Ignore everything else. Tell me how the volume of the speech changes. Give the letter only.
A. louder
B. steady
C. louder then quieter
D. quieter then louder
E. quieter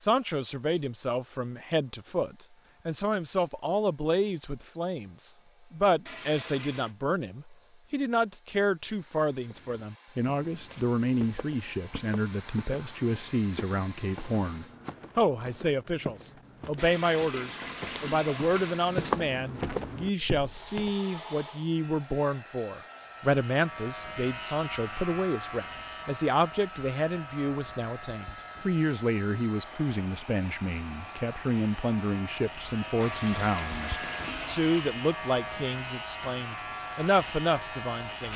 B.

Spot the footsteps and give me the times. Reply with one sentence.
You can hear the footsteps from 9.4 to 20.9 s.